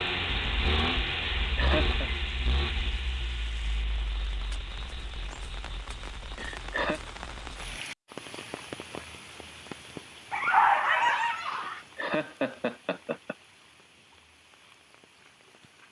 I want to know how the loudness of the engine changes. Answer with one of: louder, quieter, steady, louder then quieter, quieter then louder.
quieter.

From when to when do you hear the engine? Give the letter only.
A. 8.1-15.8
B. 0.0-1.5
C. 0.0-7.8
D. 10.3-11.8
C.